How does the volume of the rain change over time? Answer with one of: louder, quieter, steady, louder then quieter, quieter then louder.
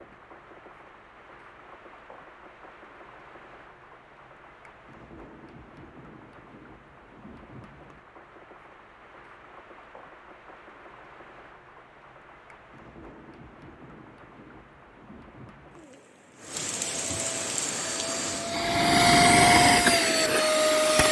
louder.